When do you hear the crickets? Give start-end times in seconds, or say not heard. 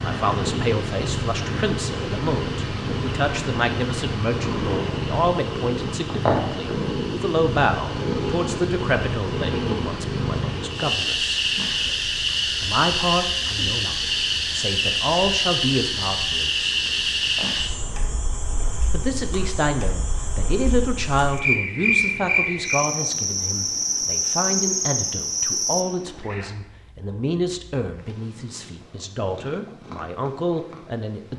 0.0-25.9.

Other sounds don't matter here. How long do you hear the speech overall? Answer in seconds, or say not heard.
28 s.